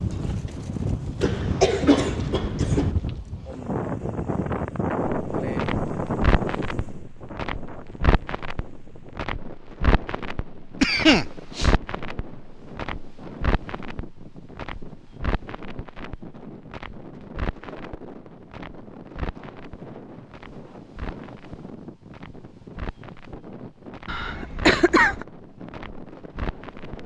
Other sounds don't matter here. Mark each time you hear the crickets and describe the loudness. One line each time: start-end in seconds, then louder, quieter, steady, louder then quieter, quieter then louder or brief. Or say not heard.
not heard.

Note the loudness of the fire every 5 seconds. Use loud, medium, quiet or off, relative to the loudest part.
off, loud, loud, medium, medium, medium.